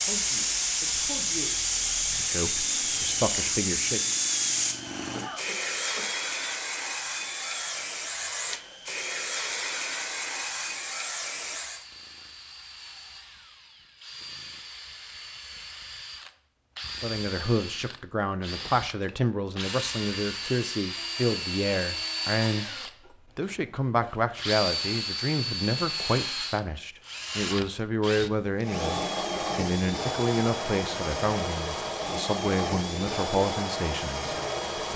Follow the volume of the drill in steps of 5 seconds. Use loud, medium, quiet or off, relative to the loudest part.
medium, quiet, quiet, medium, loud, loud, loud.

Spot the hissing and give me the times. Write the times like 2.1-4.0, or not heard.
0.0-11.8.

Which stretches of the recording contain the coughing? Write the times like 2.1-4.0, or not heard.
5.1-6.2.